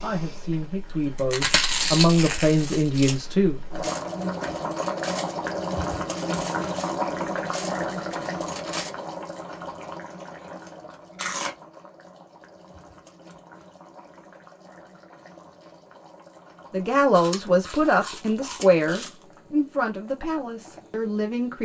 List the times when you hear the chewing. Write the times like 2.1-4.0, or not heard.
0.9-3.1, 10.2-11.6, 17.1-19.1.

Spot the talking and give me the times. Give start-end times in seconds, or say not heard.
0.0-3.6, 16.7-21.6.